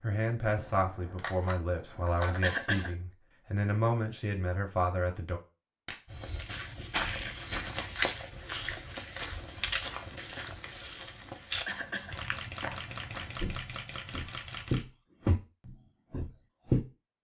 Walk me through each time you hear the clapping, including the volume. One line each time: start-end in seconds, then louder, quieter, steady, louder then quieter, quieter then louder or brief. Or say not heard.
not heard.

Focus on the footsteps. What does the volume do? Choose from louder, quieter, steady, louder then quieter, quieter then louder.
quieter then louder.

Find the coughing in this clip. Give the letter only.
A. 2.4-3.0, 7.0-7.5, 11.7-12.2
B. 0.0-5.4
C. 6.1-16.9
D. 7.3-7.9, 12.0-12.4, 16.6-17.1
A.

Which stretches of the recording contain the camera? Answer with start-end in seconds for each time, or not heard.
0.5-2.4, 5.8-6.5, 12.1-14.8.